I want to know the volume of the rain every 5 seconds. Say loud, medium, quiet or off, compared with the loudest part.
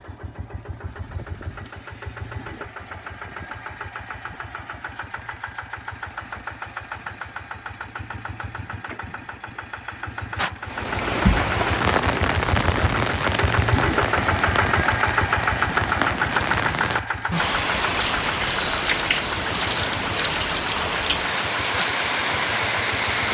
off, off, loud, loud, loud.